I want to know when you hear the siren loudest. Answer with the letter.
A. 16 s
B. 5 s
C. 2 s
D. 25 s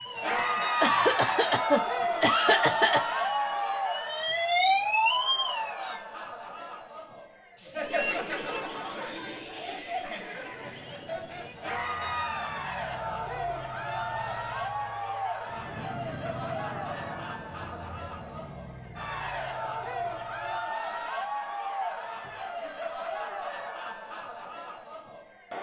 B.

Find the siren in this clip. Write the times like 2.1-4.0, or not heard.
0.0-6.0.